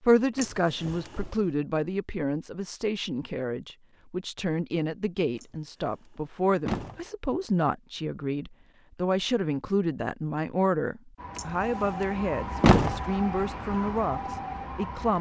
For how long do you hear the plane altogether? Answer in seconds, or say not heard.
not heard.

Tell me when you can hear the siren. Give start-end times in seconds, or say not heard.
11.2-15.1.